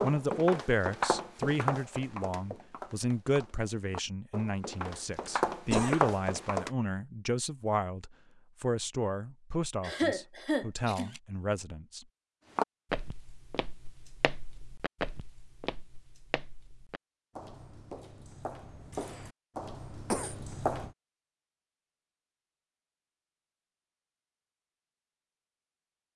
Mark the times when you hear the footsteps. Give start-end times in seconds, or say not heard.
0.0-6.7, 12.6-20.9.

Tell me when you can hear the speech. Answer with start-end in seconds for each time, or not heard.
0.0-12.1.